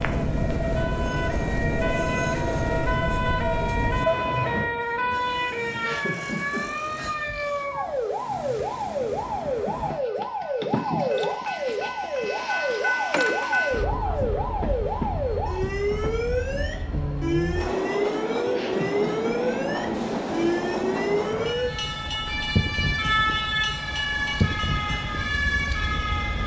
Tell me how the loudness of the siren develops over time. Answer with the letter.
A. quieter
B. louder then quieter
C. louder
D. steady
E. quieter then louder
D.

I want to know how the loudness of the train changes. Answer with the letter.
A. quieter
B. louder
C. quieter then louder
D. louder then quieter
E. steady
C.